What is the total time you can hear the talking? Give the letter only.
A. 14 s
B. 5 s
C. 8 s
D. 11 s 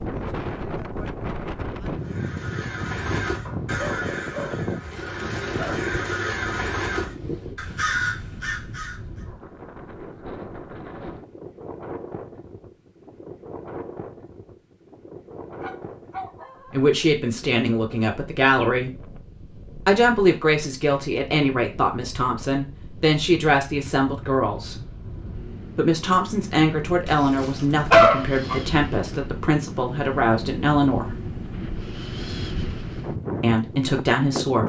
A.